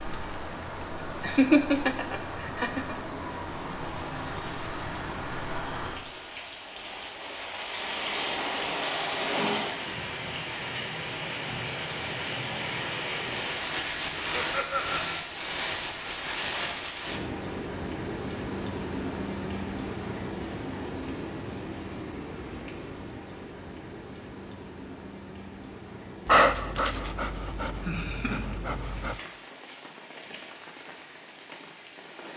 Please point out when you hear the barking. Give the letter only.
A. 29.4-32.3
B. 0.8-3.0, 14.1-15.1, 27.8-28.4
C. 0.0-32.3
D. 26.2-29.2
D.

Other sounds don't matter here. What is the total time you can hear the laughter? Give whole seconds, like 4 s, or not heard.
4 s.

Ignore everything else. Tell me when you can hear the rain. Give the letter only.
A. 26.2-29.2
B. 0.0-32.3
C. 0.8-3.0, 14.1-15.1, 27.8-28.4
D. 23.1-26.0
B.